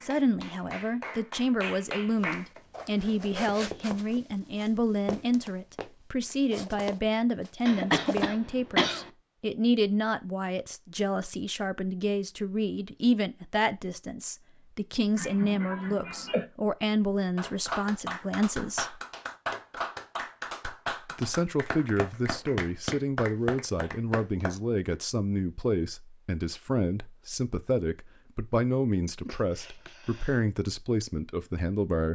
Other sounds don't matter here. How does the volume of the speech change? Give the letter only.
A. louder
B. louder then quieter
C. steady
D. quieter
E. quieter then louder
C.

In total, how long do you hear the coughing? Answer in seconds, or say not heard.
4 s.